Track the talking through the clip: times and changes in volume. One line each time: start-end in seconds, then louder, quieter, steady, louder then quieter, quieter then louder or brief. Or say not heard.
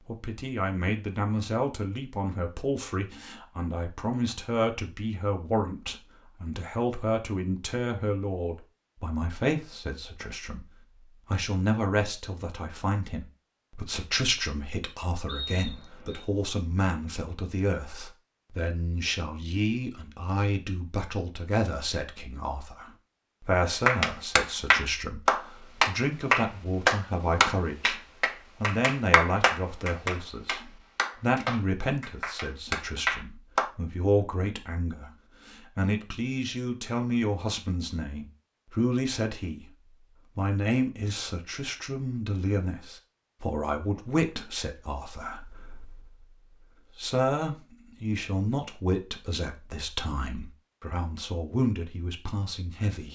0.1-10.7 steady
11.3-39.7 steady
40.4-53.1 steady.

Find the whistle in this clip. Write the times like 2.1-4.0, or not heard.
15.2-16.2.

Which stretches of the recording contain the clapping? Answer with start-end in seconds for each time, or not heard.
23.9-33.6.